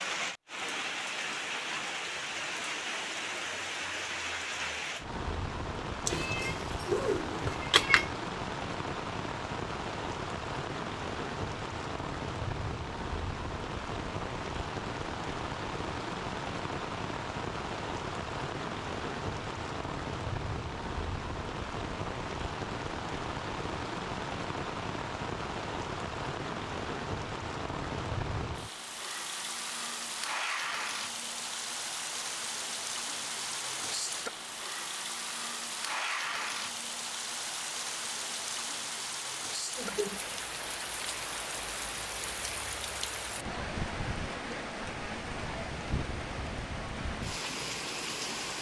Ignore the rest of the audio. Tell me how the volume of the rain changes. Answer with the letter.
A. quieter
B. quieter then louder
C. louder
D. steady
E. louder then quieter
D.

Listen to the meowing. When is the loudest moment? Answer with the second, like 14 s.
8 s.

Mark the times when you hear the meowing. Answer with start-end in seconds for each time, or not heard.
6.0-8.1.